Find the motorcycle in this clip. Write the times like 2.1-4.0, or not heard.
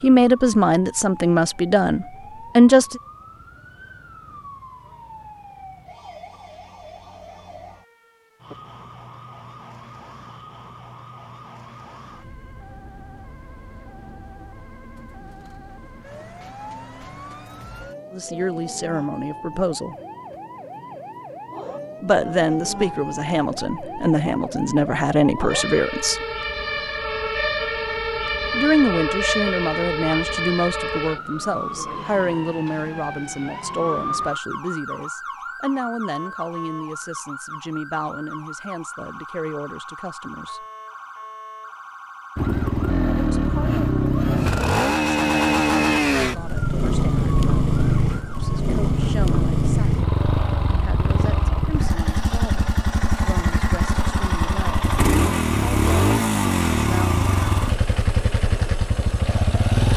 42.4-59.9.